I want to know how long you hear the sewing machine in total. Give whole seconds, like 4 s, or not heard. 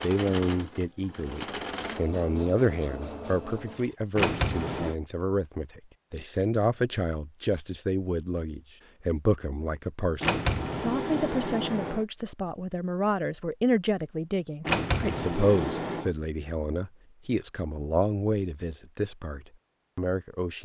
4 s.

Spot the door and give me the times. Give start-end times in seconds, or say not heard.
4.2-5.0, 10.2-12.1, 14.7-16.1.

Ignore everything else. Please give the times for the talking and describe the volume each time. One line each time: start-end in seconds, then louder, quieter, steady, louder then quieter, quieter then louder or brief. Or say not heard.
0.0-20.6 steady.